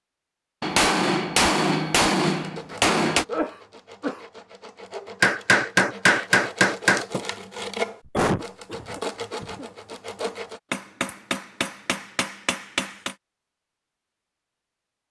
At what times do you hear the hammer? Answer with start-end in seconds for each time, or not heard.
0.6-3.2, 5.2-7.2, 10.7-13.2.